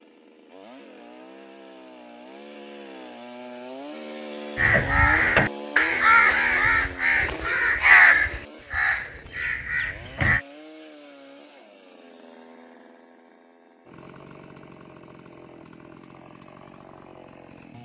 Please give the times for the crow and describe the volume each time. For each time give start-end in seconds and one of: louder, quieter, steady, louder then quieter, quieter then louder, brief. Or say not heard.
4.5-10.4 quieter.